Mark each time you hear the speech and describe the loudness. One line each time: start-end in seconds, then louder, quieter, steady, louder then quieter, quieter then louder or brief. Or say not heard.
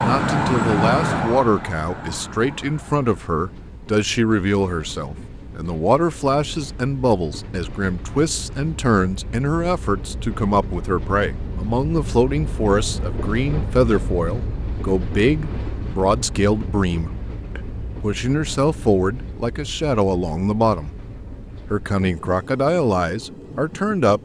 0.0-20.9 steady
21.7-24.2 brief.